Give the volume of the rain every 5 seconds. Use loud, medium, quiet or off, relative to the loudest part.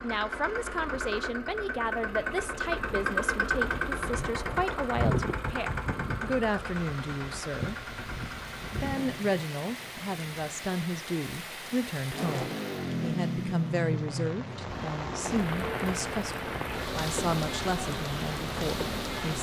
off, medium, medium, loud.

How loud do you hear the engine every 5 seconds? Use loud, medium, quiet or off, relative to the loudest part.
loud, loud, loud, medium.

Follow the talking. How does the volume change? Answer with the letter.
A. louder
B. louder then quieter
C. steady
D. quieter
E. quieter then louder
C.